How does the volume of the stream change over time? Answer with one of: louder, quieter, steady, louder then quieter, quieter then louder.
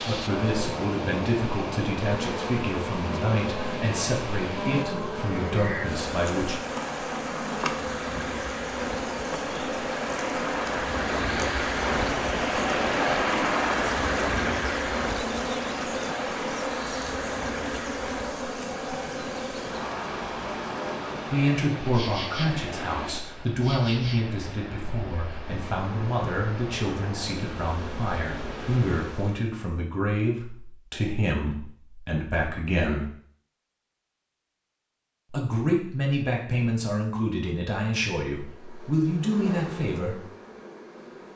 louder then quieter.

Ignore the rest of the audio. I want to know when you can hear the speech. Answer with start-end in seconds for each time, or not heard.
0.0-6.5, 21.2-33.1, 35.3-40.2.